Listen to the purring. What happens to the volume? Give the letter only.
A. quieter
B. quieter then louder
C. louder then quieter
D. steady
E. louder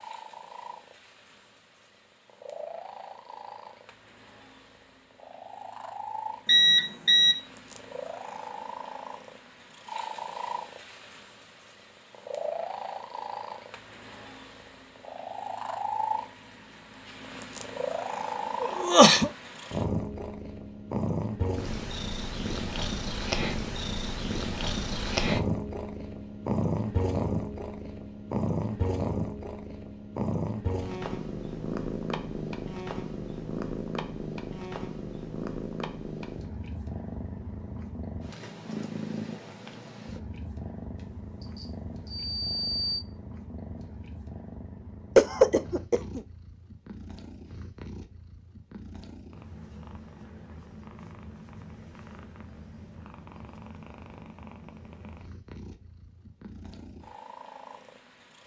C.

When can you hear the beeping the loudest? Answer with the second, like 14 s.
7 s.